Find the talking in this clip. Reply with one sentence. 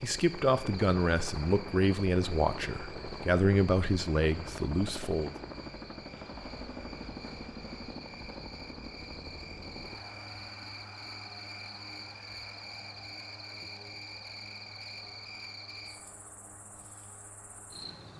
You can hear the talking from 0.0 to 5.3 s.